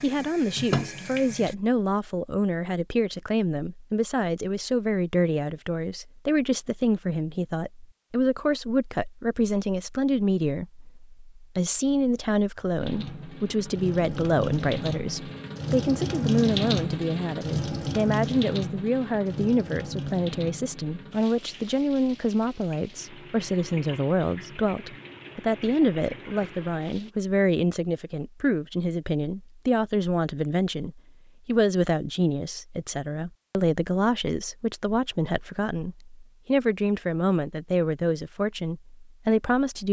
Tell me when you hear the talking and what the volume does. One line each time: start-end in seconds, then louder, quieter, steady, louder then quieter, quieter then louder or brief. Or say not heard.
0.0-39.8 steady.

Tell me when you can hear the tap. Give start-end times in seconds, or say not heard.
0.0-1.6, 12.8-27.1.